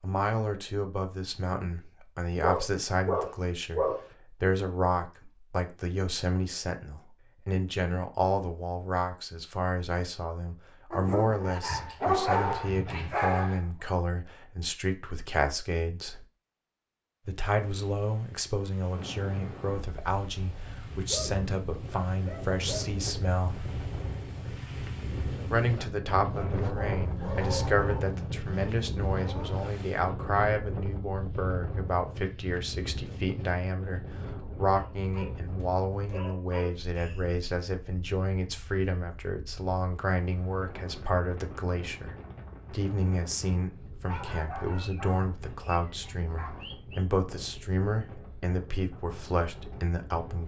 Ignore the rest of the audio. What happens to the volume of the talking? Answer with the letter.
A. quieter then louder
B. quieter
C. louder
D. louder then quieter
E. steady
E.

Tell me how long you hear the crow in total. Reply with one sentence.
The crow can't be heard in this clip.